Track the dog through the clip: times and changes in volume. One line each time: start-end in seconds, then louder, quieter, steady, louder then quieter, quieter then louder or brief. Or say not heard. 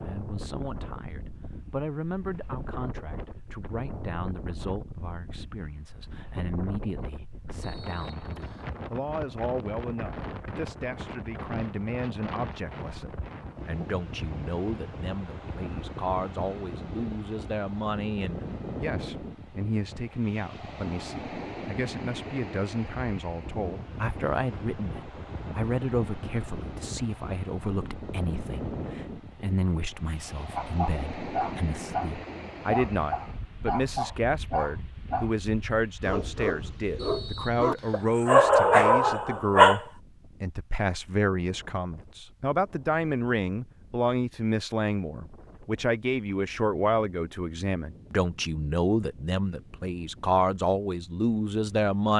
30.6-39.8 louder.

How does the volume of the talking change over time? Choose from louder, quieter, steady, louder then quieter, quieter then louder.
louder.